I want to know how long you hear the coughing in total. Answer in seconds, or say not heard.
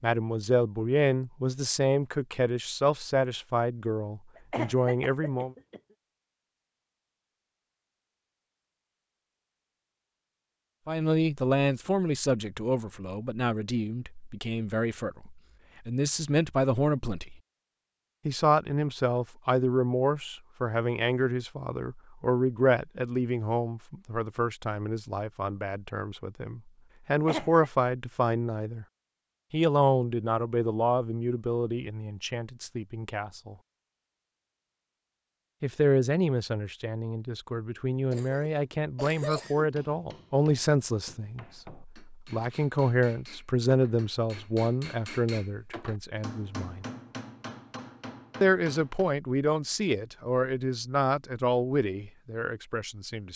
3 s.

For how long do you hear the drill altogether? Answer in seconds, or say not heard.
not heard.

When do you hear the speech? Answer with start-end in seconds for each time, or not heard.
0.0-5.5, 10.8-17.4, 18.2-28.9, 29.5-33.5, 35.6-46.9, 48.4-53.3.